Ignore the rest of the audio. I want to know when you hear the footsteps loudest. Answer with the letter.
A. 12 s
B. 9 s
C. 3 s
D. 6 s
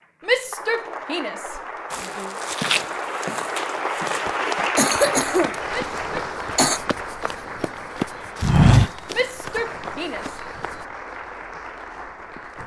B.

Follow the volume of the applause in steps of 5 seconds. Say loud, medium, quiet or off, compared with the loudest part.
loud, loud, medium.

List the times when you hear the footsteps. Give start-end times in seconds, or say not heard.
1.9-10.7.